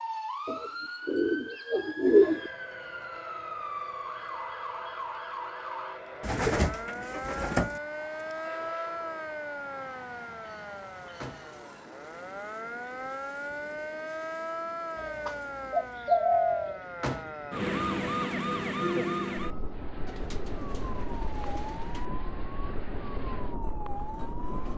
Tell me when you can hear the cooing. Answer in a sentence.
You can hear the cooing from 0.5 to 2.5 s, from 6.2 to 7.8 s, from 14.9 to 16.8 s and from 20.1 to 22.1 s.